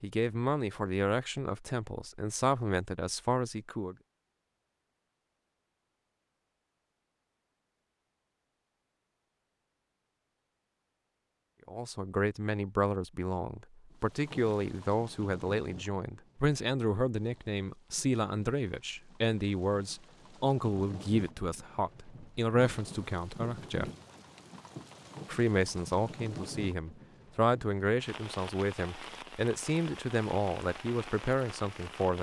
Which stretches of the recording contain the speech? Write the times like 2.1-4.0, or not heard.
0.0-4.0, 11.7-23.9, 25.2-32.1.